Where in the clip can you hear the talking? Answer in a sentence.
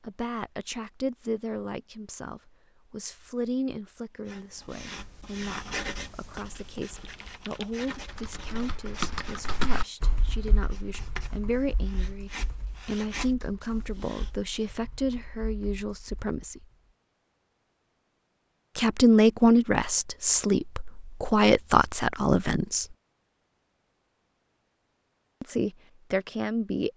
The talking can be heard from 0.0 to 16.6 s, from 18.8 to 22.9 s and from 25.4 to 26.9 s.